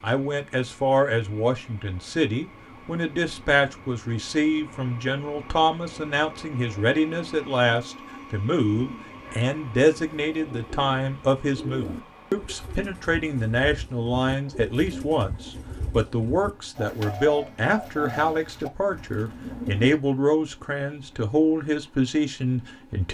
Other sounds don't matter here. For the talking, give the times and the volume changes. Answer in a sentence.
You can hear the talking from 0.0 to 23.0 s, at a steady volume.